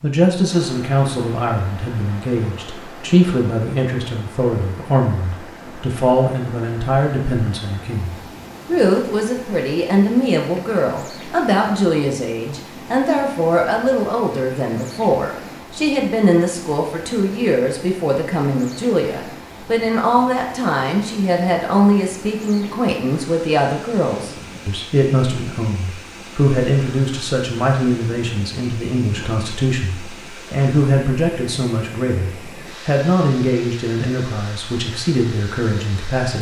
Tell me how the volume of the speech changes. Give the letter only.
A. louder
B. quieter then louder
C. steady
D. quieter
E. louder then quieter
C.